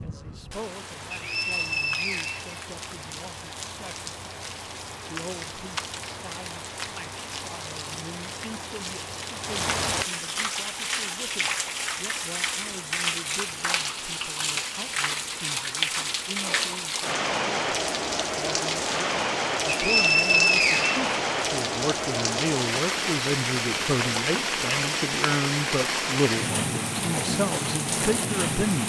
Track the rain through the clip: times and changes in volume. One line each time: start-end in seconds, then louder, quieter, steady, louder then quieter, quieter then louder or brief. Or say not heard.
0.0-28.8 louder.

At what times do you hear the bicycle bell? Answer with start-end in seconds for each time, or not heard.
not heard.